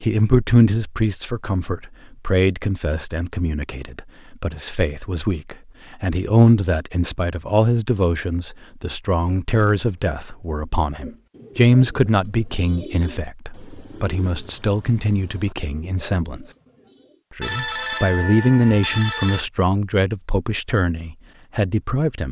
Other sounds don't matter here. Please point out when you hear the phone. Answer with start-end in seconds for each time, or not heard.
17.4-19.4.